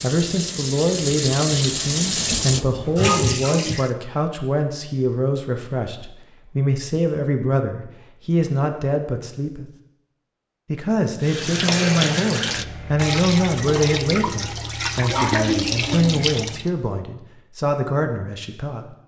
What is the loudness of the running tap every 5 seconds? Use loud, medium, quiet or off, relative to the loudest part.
loud, off, loud, loud.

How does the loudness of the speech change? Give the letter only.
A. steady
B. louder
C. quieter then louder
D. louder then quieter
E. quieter
A.